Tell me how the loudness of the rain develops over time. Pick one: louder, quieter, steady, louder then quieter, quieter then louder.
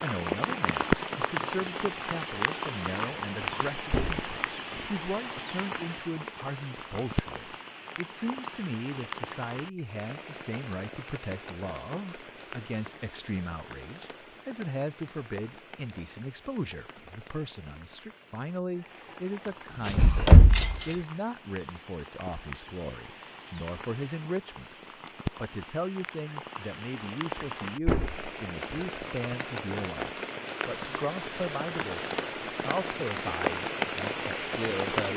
quieter then louder.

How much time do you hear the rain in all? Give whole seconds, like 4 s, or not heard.
35 s.